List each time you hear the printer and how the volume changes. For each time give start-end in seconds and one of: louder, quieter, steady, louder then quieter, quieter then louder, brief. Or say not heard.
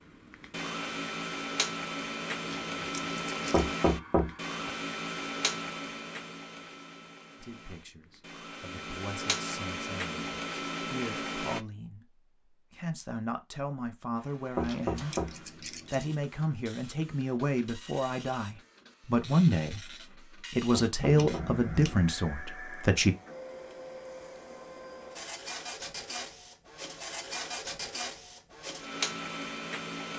0.0-11.7 quieter then louder
14.2-30.1 louder.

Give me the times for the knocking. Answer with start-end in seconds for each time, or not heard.
3.5-4.5, 14.6-15.3, 20.7-21.6.